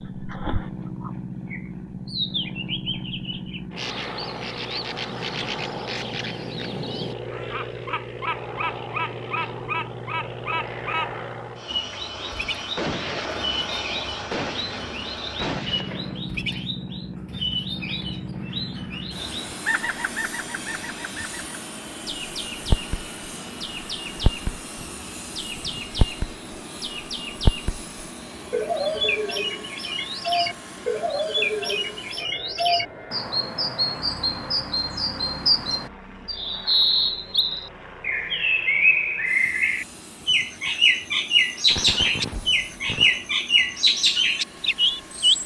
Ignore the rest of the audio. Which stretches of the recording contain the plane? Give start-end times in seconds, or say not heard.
0.0-45.4.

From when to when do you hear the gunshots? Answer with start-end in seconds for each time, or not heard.
12.2-16.2, 41.6-43.2.